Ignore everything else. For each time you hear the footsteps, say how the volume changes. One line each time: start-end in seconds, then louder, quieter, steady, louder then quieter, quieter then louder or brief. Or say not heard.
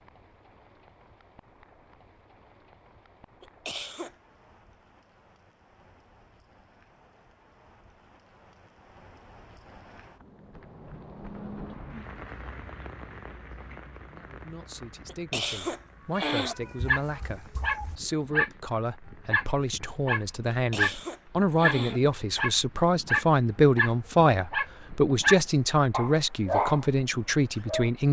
not heard.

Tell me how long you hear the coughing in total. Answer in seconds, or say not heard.
4 s.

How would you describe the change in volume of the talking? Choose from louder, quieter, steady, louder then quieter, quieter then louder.
louder.